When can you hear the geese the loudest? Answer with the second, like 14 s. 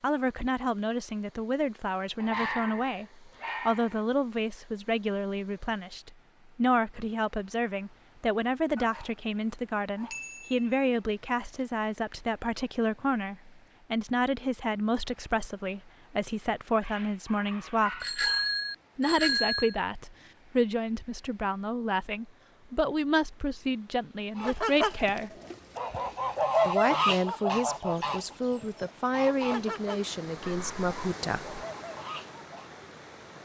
27 s.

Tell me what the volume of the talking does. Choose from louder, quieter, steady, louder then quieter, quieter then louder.
steady.